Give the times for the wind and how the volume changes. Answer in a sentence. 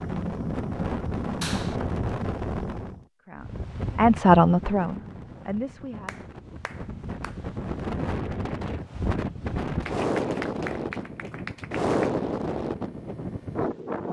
You can hear the wind from 0.0 to 14.0 s, getting quieter then louder.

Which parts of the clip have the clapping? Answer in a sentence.
The clapping can be heard from 1.4 to 1.8 s, from 6.0 to 7.4 s and from 9.8 to 12.1 s.